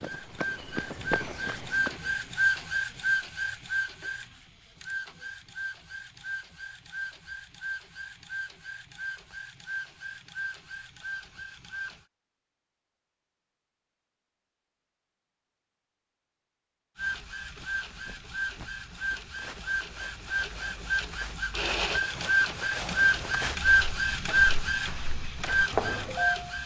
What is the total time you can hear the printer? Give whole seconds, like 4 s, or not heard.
22 s.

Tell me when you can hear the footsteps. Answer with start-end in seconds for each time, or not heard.
0.0-1.9, 17.6-26.2.